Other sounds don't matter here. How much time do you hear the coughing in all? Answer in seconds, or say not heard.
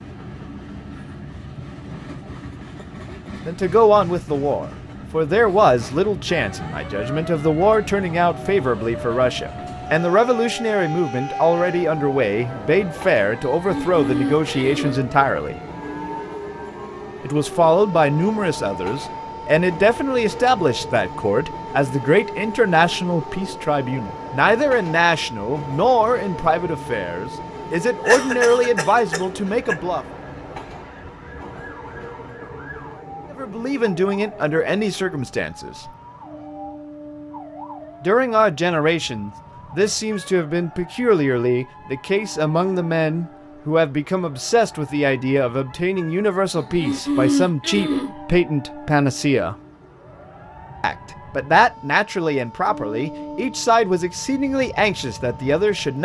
5 s.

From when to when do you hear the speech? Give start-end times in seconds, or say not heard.
3.1-15.6, 17.2-30.1, 33.3-35.9, 38.0-49.5, 50.8-56.0.